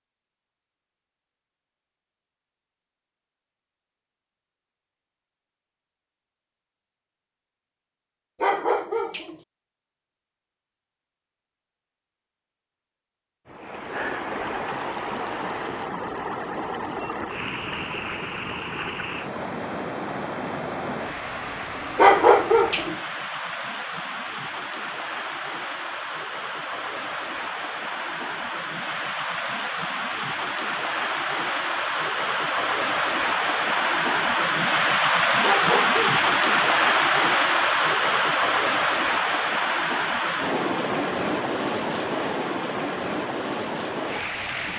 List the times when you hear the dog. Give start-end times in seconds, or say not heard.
8.4-9.3, 21.9-22.9, 35.4-36.2.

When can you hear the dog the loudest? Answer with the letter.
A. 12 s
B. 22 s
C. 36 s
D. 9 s
B.